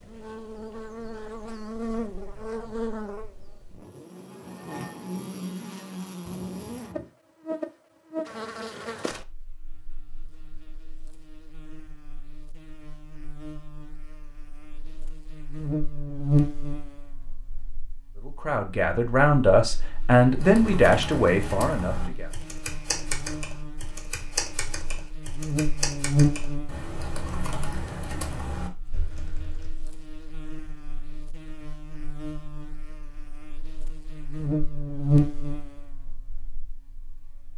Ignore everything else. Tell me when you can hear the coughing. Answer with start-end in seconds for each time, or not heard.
6.2-7.0.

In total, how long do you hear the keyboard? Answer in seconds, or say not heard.
9 s.